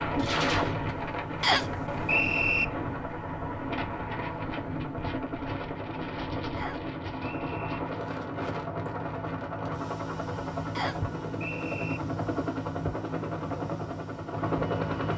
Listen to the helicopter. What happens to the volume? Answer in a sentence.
The loudness of the helicopter goes up.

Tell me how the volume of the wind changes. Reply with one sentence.
The loudness of the wind goes down.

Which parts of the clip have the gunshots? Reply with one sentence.
The gunshots can be heard from 0.1 to 1.1 s.